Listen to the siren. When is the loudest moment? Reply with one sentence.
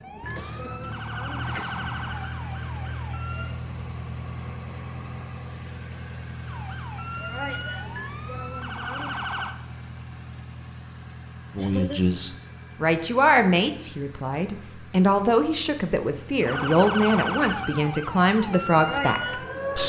The loudest moment of the siren is at 17 seconds.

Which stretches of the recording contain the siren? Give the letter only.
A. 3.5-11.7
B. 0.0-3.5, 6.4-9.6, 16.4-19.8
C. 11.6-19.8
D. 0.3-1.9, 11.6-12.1
B.